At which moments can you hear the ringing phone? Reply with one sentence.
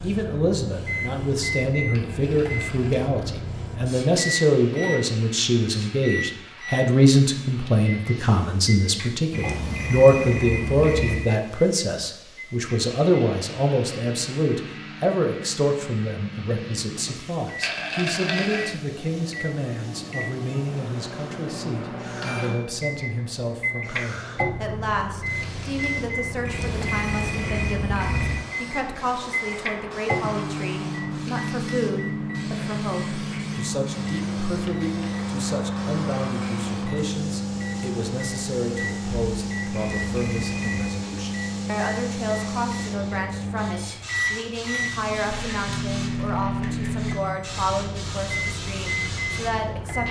The ringing phone can be heard from 9.3 to 11.2 s, from 26.4 to 28.4 s and from 39.7 to 40.9 s.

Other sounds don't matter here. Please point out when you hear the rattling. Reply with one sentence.
You can hear the rattling from 1.9 to 3.0 s, from 17.6 to 18.7 s and from 45.3 to 47.1 s.